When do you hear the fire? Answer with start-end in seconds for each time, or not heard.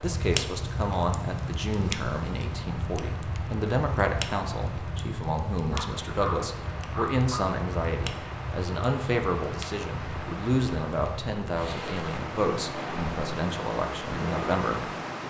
0.0-15.2.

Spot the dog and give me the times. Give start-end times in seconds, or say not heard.
5.7-7.4.